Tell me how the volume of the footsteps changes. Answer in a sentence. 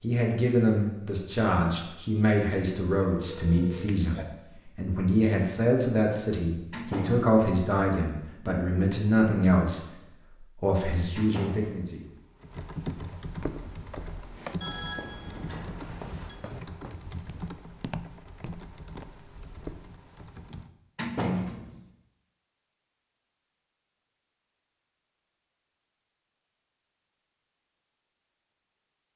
The loudness of the footsteps goes down, then up.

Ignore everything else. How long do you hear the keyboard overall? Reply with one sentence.
You can hear the keyboard for 9 seconds altogether.